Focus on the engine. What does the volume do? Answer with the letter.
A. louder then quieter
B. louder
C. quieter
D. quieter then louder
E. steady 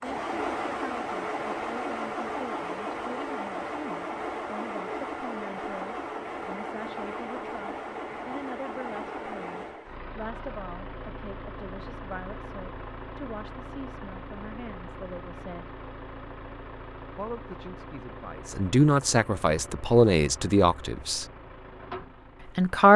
C.